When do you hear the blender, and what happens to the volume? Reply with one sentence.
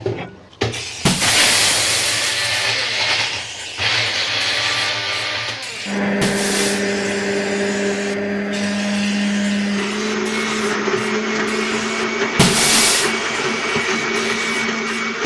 You can hear the blender from 0.0 to 15.2 s, at a steady volume.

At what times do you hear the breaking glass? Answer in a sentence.
You can hear the breaking glass from 1.1 to 2.7 s, from 6.2 to 6.8 s and from 12.3 to 13.1 s.